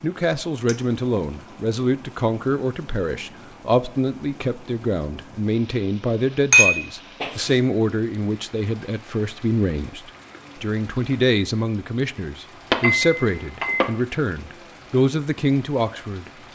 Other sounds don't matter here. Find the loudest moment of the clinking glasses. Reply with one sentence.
The loudest moment of the clinking glasses is at 7 seconds.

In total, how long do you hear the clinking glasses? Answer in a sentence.
The clinking glasses can be heard for 3 seconds in total.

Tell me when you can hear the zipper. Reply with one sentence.
The zipper can't be heard in this clip.